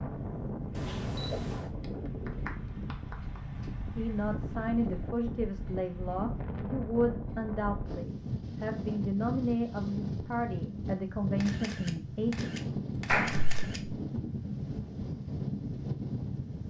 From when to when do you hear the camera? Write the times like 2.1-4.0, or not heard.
0.7-1.7, 11.4-13.8.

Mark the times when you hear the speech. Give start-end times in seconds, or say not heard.
4.0-12.4.